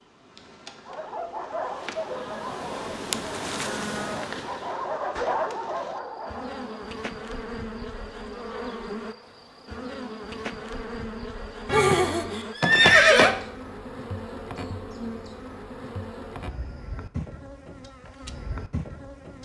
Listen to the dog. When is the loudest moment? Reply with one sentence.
The loudest moment of the dog is at 5 seconds.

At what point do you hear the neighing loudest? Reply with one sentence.
The loudest moment of the neighing is at 13 seconds.